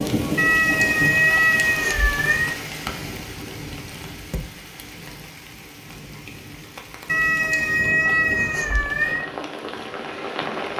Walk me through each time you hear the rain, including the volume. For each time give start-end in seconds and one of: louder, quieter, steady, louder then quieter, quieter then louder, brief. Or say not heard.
0.0-10.7 quieter then louder.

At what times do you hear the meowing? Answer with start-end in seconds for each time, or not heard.
0.3-2.5, 7.0-9.2.